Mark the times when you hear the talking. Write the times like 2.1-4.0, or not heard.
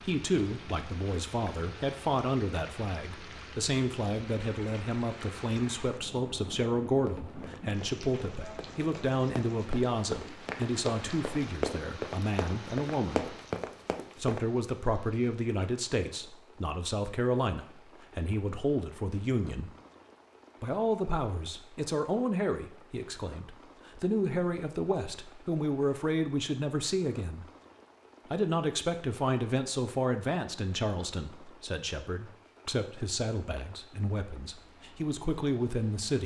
0.0-13.3, 14.2-19.7, 20.6-27.4, 28.3-36.2.